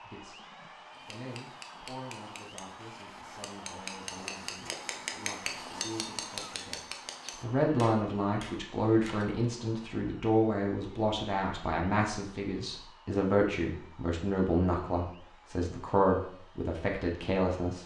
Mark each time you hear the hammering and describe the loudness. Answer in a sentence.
You can hear the hammering from 0.9 to 9.4 s, getting louder then quieter.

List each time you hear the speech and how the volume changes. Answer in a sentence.
The speech can be heard from 0.0 to 17.8 s, getting louder.